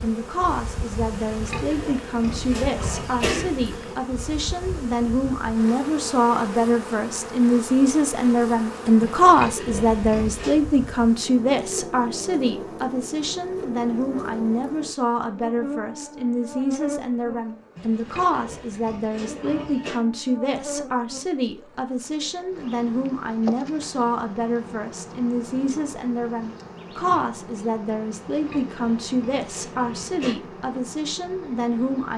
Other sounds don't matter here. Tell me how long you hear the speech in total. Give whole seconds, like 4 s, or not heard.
32 s.